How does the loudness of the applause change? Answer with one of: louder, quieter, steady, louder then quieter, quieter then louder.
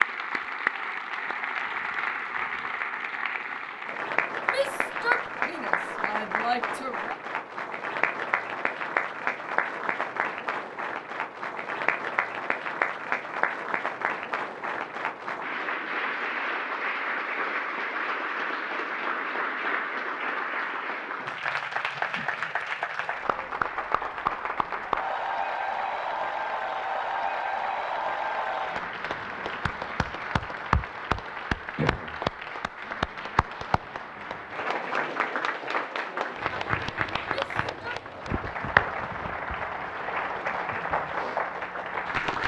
steady.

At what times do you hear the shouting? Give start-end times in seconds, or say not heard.
4.5-7.2, 37.4-38.0.